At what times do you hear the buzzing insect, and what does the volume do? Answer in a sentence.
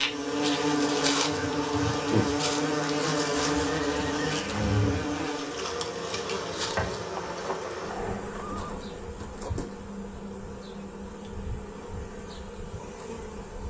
You can hear the buzzing insect from 0.0 to 13.6 s, getting quieter.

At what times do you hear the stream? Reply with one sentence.
You can't hear the stream here.